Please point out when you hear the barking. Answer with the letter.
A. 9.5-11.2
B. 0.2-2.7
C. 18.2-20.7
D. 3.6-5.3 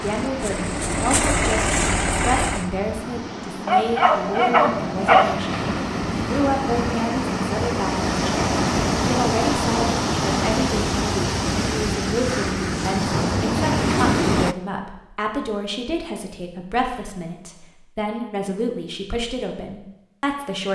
D.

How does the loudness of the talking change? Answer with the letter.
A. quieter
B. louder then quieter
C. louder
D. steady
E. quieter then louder
D.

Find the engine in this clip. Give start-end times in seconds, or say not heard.
0.2-2.7.